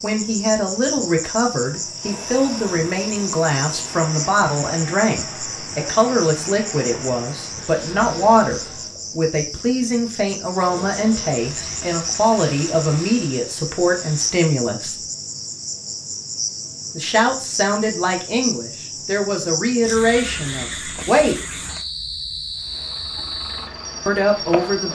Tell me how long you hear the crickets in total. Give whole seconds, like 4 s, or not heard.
25 s.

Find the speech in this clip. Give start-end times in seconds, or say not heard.
0.0-15.0, 16.9-21.6, 24.1-24.9.